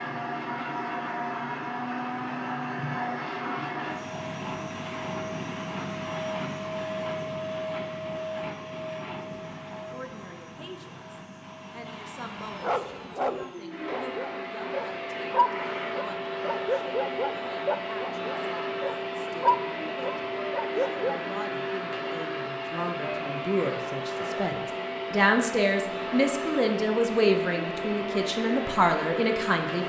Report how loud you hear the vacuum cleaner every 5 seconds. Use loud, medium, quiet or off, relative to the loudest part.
loud, loud, medium, loud, loud, loud.